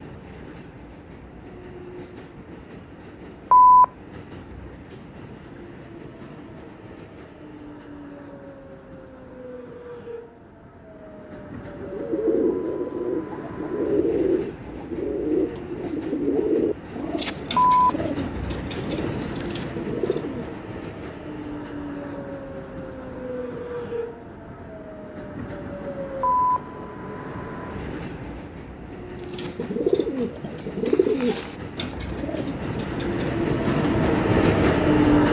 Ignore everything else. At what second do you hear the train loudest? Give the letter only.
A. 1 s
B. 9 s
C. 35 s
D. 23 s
C.